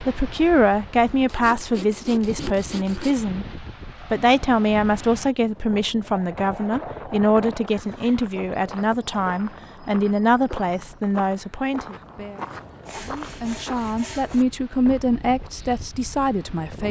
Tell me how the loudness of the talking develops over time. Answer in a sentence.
The volume of the talking stays about the same.